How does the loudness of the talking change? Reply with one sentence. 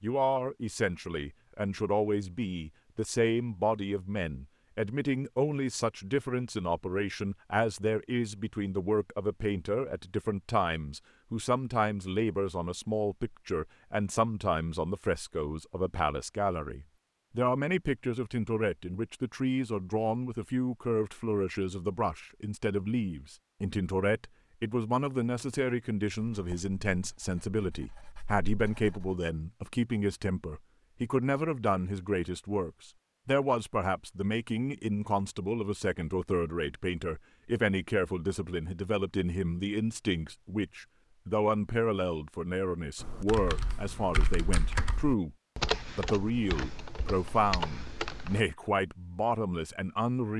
The volume of the talking stays about the same.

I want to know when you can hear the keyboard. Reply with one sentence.
You can hear the keyboard from 43.0 to 48.4 s.